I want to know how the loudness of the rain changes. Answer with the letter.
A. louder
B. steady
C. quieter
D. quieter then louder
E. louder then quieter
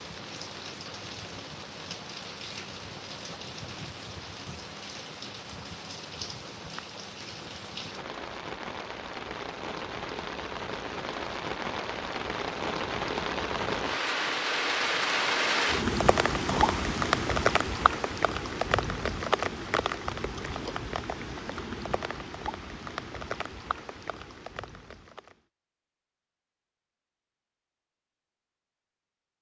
E.